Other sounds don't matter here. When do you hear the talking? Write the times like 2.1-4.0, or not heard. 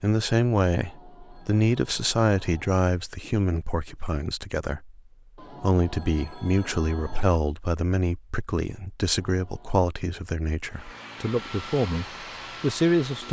0.0-13.2.